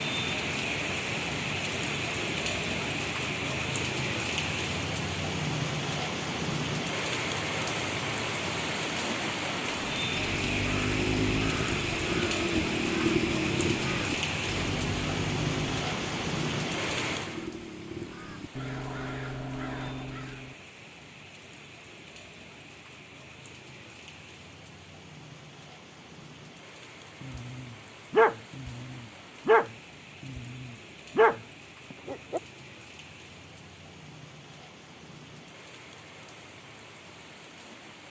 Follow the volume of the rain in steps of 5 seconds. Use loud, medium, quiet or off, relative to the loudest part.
loud, loud, loud, loud, quiet, quiet, quiet, quiet.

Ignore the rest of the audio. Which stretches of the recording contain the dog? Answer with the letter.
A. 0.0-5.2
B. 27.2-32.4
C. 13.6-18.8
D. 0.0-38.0
B.